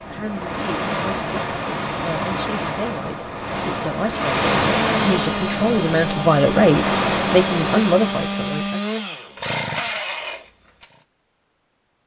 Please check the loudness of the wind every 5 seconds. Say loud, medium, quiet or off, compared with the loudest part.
loud, loud, off.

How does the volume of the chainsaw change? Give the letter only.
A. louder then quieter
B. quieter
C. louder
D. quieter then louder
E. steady
E.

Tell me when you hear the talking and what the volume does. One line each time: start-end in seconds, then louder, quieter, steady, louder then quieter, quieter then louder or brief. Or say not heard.
0.1-8.8 louder.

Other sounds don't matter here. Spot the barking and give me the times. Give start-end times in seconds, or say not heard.
not heard.